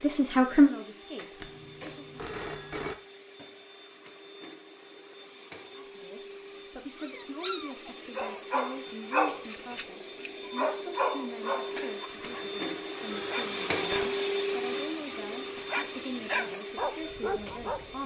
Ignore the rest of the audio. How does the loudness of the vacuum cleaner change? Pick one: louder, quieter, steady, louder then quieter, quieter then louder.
louder.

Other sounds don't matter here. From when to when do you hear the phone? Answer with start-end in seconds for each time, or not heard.
1.4-3.0, 13.1-14.2.